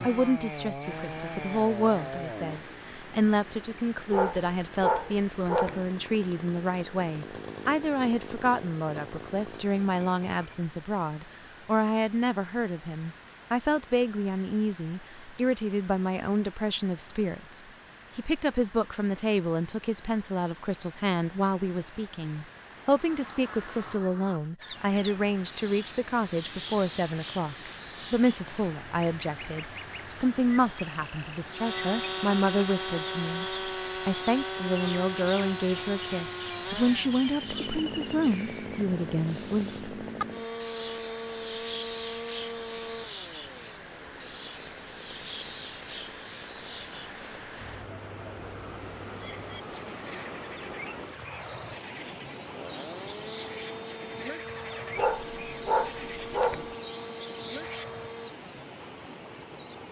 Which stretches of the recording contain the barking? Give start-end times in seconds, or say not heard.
4.1-5.9, 55.0-56.8.